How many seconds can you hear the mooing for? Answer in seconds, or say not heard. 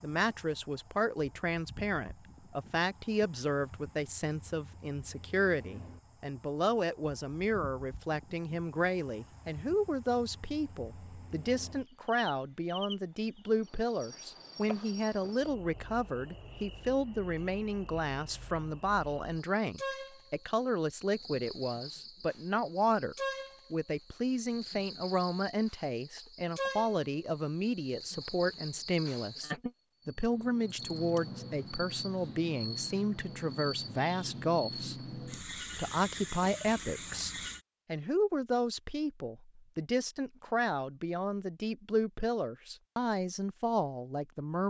not heard.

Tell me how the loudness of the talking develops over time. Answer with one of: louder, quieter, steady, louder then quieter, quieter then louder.
steady.